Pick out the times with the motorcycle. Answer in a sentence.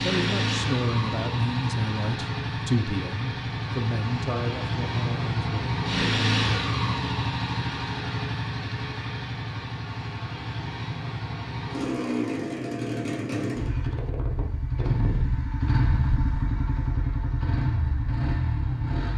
The motorcycle can be heard from 0.0 to 19.1 s.